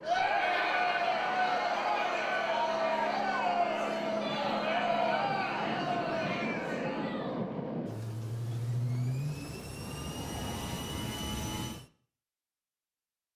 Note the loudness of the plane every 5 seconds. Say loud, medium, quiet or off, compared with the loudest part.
medium, loud, loud.